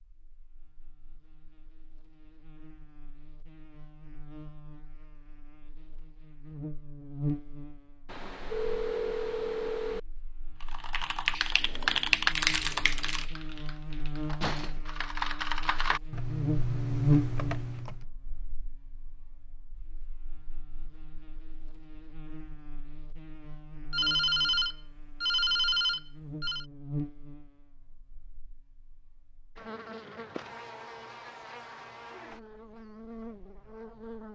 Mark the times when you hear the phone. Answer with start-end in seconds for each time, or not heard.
8.1-10.0, 23.9-26.6.